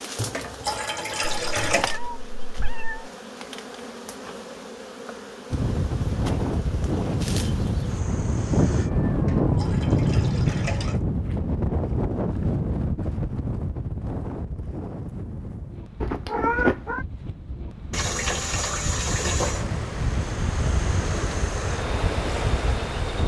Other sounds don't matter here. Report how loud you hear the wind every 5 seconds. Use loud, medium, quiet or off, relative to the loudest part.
off, loud, loud, medium, loud.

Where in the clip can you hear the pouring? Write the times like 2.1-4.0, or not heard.
0.1-2.0, 9.1-11.0, 17.9-19.6.